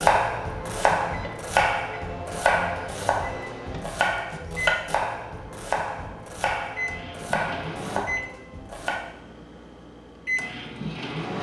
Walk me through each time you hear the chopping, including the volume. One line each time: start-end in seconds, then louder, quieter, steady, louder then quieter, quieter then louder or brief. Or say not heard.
0.0-9.0 quieter.